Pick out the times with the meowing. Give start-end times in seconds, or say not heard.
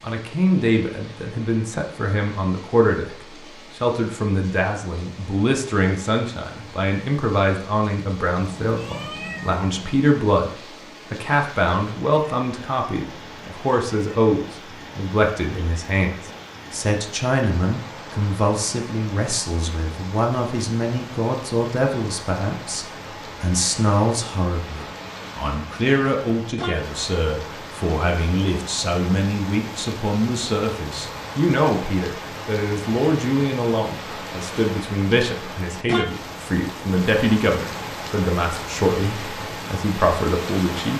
8.3-9.9.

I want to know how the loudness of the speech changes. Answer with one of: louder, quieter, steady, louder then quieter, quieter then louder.
steady.